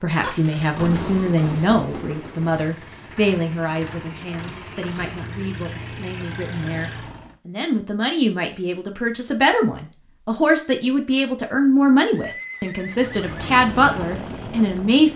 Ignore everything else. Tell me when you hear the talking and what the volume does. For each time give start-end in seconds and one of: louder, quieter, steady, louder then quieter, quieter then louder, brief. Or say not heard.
0.0-15.1 quieter then louder.